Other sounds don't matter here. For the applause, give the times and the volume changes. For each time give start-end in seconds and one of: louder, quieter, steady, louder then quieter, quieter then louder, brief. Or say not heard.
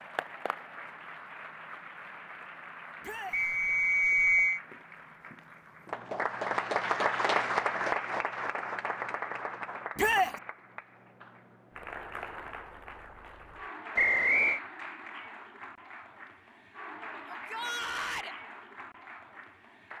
0.0-19.9 louder then quieter.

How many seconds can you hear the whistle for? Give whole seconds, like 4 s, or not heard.
2 s.